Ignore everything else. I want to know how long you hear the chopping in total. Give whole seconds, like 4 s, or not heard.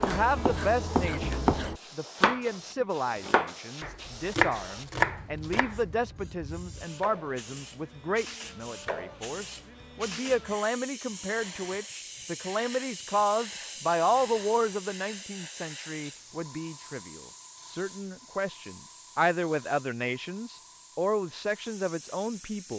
6 s.